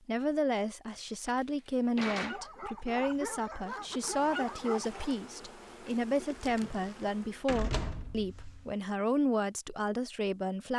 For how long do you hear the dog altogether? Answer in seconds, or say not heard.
3 s.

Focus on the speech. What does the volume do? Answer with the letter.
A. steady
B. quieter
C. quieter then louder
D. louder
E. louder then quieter
A.